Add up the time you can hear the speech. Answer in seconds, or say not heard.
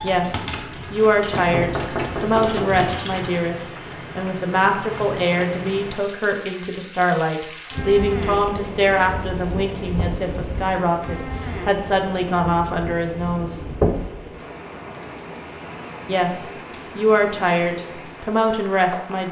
17 s.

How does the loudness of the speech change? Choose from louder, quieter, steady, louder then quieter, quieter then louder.
steady.